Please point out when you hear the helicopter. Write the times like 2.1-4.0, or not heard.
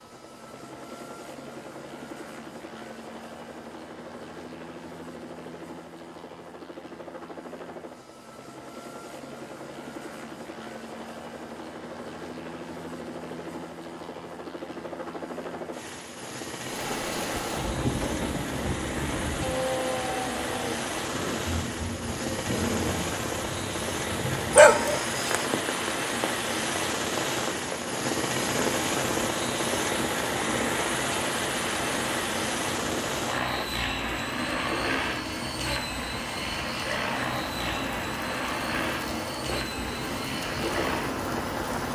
0.0-41.9.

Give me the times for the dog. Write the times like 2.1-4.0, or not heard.
24.5-25.4.